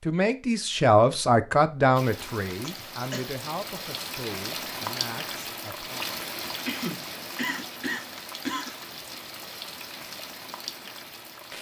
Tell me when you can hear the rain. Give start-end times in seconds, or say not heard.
1.9-11.5.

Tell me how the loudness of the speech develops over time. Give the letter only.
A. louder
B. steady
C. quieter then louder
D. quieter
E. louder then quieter
D.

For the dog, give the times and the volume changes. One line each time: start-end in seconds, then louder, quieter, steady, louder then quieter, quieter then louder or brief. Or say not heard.
not heard.